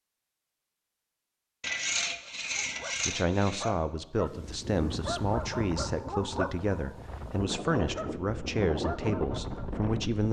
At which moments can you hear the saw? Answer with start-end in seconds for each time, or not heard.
1.6-3.7.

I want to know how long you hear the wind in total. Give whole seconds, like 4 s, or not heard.
6 s.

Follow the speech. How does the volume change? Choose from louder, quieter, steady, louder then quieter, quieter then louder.
steady.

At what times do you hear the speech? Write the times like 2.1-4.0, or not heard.
3.0-10.2.